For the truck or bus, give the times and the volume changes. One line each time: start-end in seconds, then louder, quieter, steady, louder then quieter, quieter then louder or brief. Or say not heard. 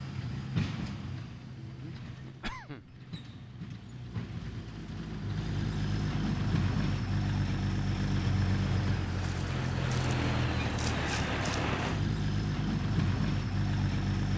0.0-14.3 louder.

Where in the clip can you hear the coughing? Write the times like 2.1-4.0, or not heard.
1.6-3.0.